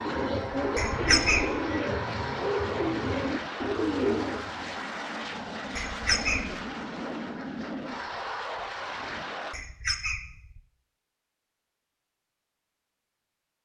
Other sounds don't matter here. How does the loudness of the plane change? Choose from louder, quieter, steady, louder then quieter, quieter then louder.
steady.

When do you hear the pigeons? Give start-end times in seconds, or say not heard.
0.0-4.8.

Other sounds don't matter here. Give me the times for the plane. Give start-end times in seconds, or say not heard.
0.0-9.6.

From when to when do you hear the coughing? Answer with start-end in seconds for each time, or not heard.
0.8-1.6, 5.8-6.6, 9.5-10.6.